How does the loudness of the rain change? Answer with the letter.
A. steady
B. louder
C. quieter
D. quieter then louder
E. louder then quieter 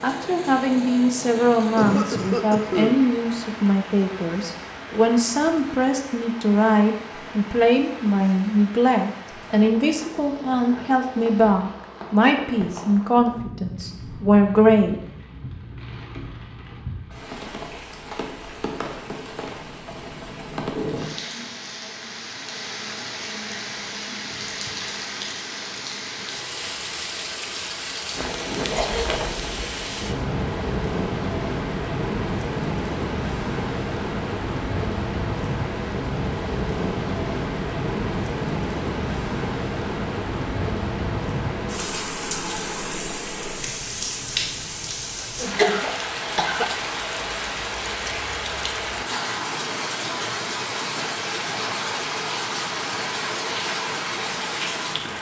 B.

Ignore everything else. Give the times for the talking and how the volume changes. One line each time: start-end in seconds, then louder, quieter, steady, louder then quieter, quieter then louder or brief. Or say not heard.
0.0-15.0 steady.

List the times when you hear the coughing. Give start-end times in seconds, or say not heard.
1.8-3.0, 28.6-29.1, 45.2-46.9.